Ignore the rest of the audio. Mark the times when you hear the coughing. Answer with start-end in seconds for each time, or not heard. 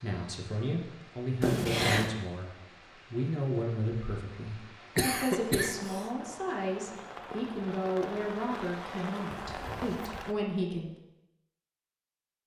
1.4-2.1, 5.0-6.0, 9.3-10.3.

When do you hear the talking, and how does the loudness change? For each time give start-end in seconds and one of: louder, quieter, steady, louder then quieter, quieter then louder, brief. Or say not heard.
0.0-10.9 steady.